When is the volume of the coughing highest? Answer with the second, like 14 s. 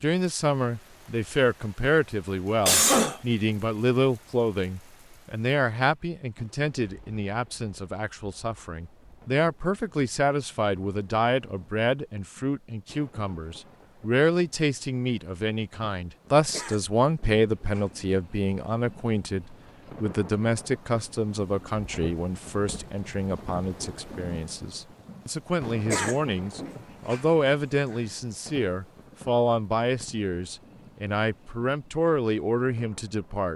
3 s.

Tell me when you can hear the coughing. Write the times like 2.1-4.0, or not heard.
2.6-3.2, 16.5-17.9, 25.9-27.2.